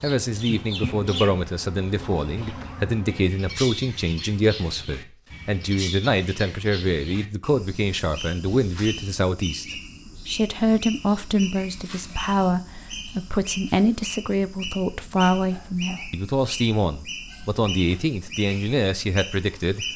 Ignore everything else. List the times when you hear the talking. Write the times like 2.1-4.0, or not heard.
0.0-19.9.